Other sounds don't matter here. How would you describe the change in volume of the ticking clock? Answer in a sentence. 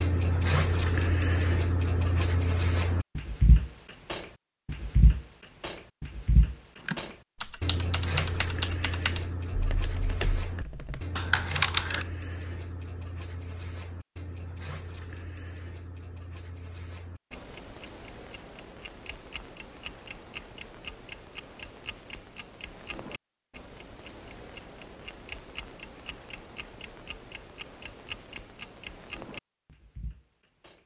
The loudness of the ticking clock goes down.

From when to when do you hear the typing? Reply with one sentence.
You can hear the typing from 6.8 to 12.1 s.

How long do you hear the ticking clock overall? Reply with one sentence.
The ticking clock can be heard for 31 seconds in total.